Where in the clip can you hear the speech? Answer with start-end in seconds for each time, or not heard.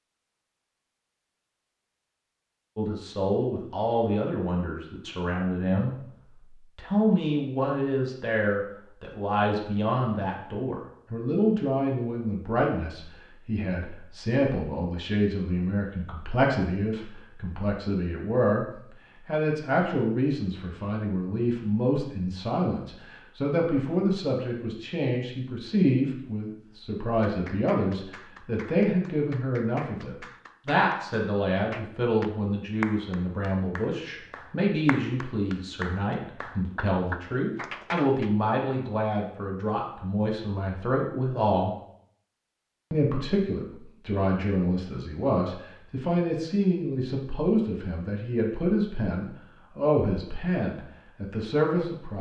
2.8-6.0, 6.8-18.6, 19.2-41.8, 42.9-52.1.